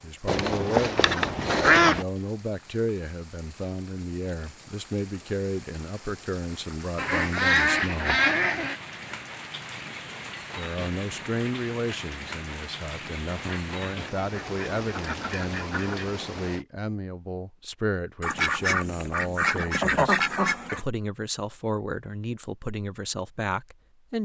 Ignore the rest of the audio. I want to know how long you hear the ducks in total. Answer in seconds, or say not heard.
9 s.